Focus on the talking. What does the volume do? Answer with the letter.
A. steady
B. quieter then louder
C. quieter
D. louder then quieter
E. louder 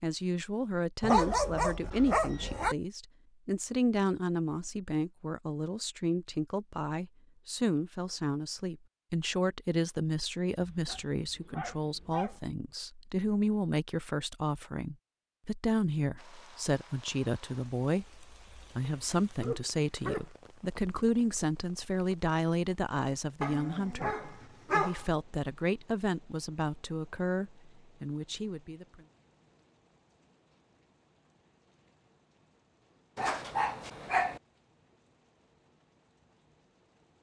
A.